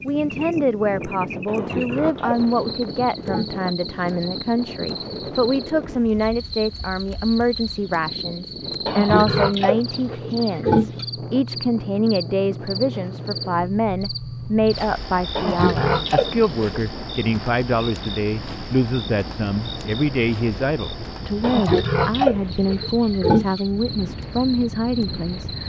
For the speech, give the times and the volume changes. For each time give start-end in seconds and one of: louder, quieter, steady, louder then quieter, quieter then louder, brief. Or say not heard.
0.0-25.6 steady.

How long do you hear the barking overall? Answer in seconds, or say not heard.
not heard.